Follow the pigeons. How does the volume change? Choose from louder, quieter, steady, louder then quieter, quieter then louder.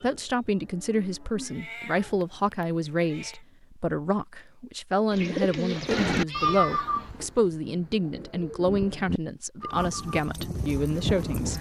quieter then louder.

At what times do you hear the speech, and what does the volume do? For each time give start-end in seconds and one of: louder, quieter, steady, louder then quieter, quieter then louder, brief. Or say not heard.
0.0-11.5 steady.